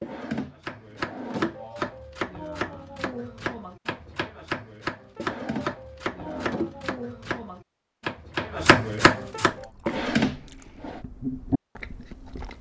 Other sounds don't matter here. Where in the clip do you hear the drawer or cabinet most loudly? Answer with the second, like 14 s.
10 s.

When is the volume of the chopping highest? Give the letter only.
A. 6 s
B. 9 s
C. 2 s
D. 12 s
B.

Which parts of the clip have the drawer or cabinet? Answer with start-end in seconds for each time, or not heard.
0.0-1.6, 5.2-6.8, 9.8-11.0.